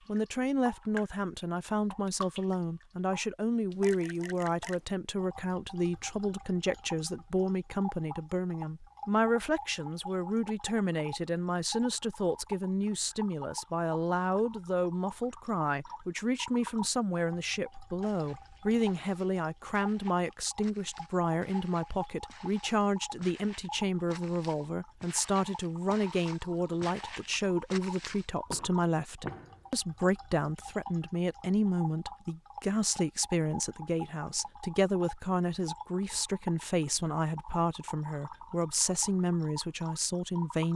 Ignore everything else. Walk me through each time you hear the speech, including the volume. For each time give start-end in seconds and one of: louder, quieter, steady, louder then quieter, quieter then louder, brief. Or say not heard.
0.1-40.7 steady.